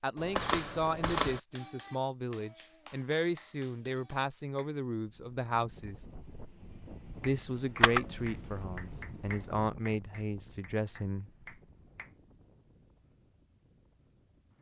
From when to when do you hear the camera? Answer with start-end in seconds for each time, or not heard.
0.1-1.4, 7.8-9.4.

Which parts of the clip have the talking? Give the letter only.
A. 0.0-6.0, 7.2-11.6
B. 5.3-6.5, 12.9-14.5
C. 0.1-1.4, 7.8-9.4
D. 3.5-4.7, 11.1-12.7
A.